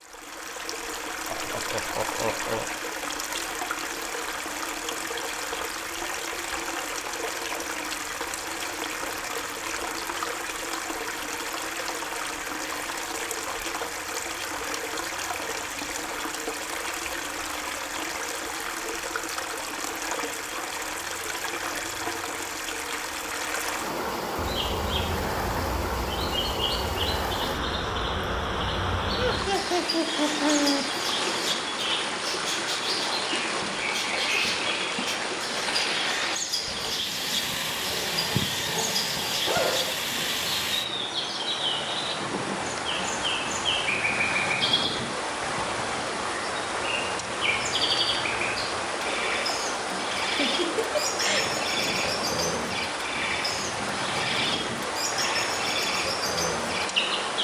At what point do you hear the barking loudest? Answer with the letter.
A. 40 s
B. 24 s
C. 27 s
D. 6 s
A.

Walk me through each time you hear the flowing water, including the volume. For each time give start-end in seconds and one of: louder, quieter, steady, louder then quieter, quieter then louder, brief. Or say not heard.
0.0-57.3 steady.